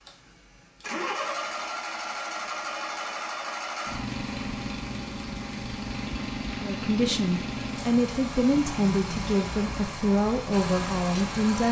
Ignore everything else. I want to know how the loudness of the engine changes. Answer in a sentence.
The volume of the engine stays about the same.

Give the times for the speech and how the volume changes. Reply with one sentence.
You can hear the speech from 6.6 to 11.6 s, at a steady volume.